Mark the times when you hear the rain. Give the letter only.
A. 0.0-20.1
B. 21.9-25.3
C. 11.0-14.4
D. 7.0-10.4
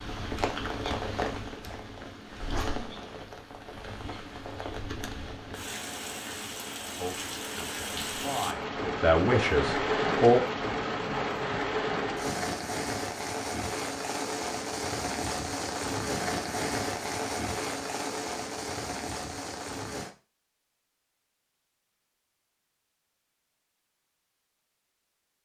A.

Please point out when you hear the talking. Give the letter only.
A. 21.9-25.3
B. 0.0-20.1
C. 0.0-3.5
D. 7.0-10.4
D.